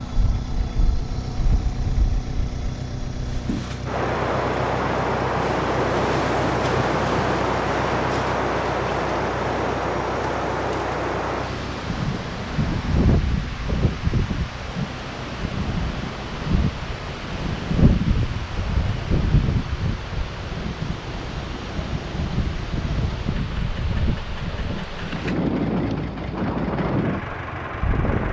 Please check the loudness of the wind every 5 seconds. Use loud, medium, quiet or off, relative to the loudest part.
medium, loud, loud, loud, medium, loud.